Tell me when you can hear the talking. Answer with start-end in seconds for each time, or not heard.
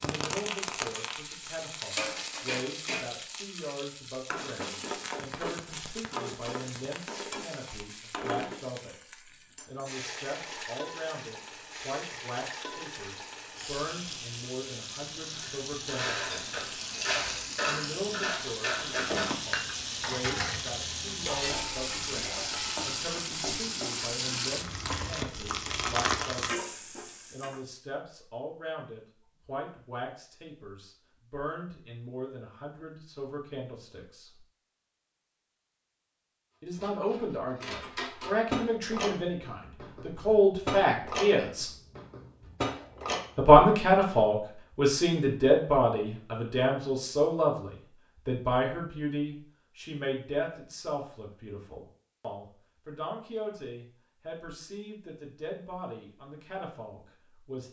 0.0-16.6, 17.6-26.7, 27.3-34.4, 36.6-41.7, 43.4-57.6.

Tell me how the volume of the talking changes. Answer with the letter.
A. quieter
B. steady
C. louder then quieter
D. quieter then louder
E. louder
C.